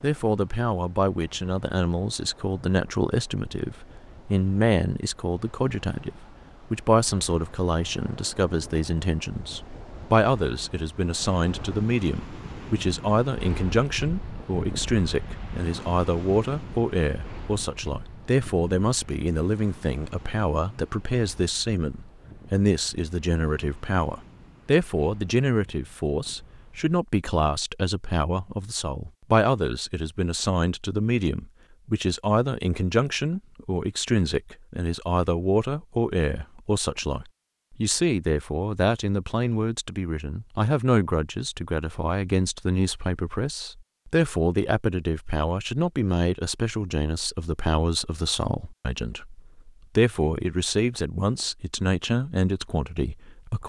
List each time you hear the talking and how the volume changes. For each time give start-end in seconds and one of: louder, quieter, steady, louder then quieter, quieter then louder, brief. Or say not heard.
0.0-53.6 steady.